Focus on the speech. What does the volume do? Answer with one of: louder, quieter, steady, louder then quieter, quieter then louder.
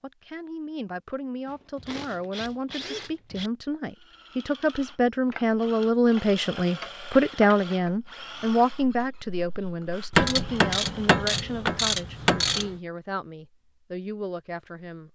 louder then quieter.